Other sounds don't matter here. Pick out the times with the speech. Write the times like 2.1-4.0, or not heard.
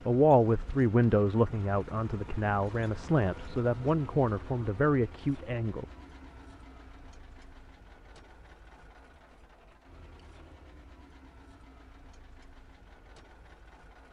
0.1-5.8.